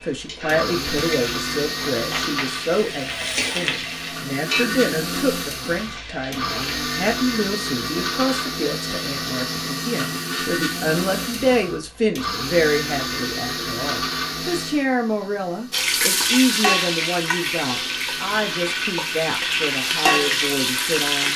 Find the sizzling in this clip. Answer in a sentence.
The sizzling can be heard from 0.0 to 6.8 s and from 15.7 to 21.3 s.